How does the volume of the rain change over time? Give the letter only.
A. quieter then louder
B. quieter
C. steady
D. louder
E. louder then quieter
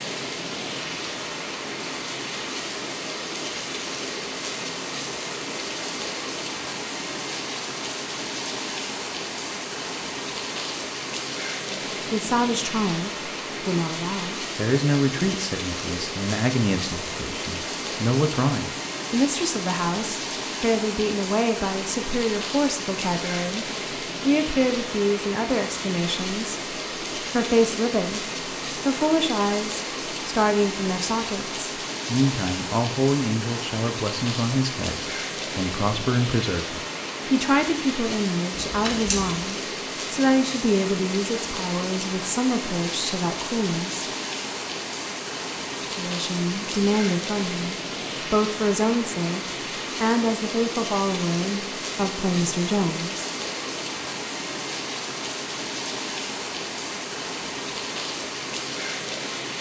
C.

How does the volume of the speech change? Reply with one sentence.
The loudness of the speech stays about the same.